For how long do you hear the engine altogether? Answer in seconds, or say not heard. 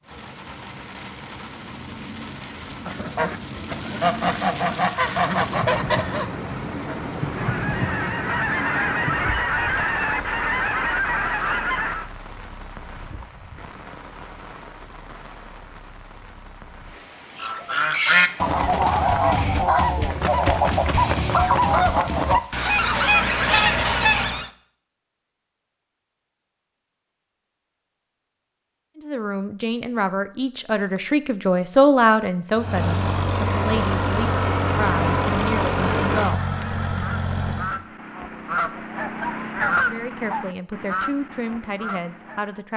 5 s.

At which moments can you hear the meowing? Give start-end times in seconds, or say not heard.
not heard.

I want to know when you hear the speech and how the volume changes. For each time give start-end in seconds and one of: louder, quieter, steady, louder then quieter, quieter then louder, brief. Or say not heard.
28.9-36.4 louder then quieter
39.9-42.7 brief.